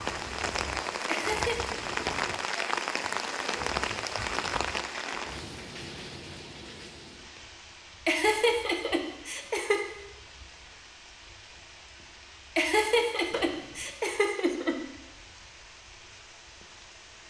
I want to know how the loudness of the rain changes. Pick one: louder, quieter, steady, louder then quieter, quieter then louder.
quieter.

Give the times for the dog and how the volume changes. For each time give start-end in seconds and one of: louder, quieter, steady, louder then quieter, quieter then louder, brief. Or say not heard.
not heard.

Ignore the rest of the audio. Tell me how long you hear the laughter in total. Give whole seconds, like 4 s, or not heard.
5 s.